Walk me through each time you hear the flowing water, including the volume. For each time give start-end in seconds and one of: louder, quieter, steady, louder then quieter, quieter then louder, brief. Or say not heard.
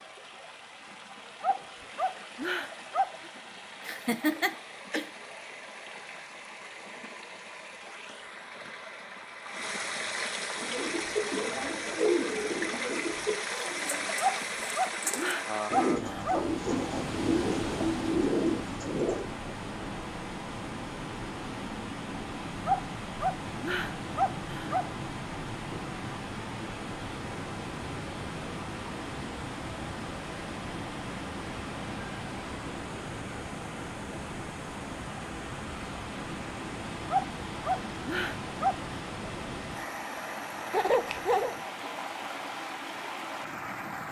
0.0-44.0 louder.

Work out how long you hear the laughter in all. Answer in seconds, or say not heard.
3 s.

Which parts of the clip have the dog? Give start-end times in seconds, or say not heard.
1.4-3.3, 14.2-16.4, 22.6-24.9, 37.1-38.8.